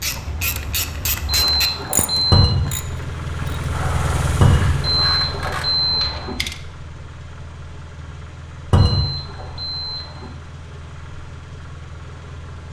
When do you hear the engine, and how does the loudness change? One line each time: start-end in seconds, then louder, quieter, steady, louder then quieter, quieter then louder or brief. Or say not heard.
0.0-12.6 louder then quieter.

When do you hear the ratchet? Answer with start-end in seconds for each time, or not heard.
0.0-6.5.